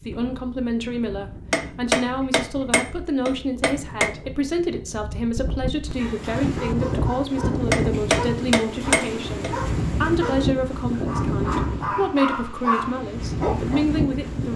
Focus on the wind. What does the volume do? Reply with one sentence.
The volume of the wind goes up.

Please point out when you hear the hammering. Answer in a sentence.
The hammering can be heard from 1.5 to 4.1 s and from 7.7 to 9.6 s.